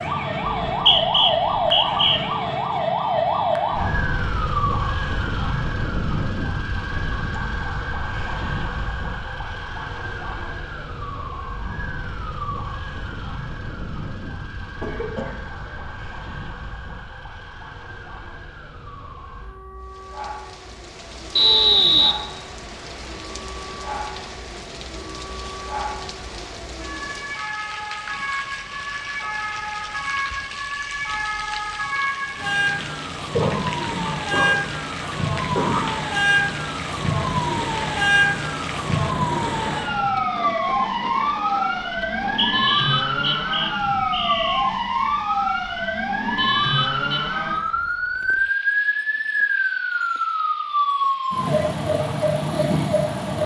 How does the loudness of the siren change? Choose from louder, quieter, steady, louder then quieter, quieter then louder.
quieter then louder.